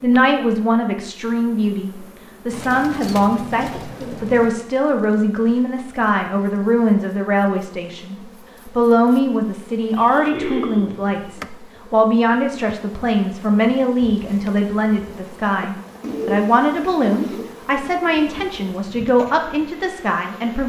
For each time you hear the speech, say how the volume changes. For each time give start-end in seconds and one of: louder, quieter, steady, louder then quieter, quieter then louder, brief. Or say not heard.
0.0-20.6 steady.